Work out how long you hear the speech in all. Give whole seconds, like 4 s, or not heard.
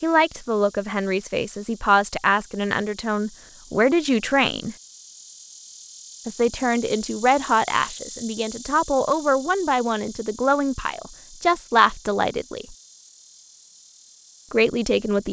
12 s.